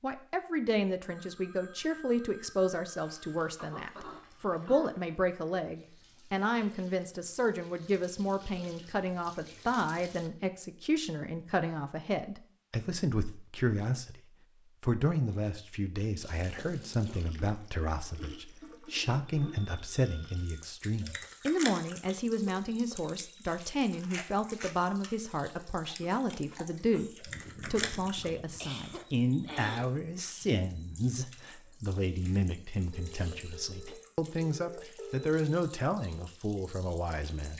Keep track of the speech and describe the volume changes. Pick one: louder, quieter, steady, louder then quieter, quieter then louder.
steady.